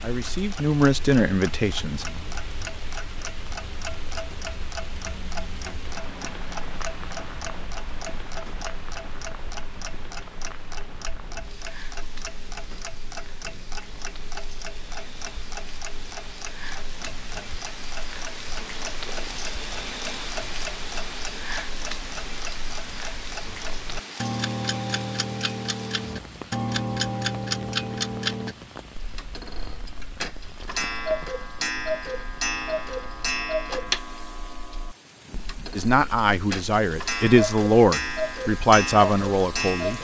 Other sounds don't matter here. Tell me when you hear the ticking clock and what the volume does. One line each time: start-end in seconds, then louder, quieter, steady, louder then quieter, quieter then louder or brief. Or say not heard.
0.0-39.9 louder.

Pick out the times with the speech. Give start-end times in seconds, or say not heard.
0.0-2.1, 35.8-39.9.